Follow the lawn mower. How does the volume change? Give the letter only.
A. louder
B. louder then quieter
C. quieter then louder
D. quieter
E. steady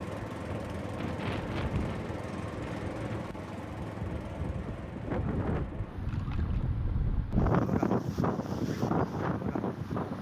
D.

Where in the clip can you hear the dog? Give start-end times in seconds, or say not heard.
not heard.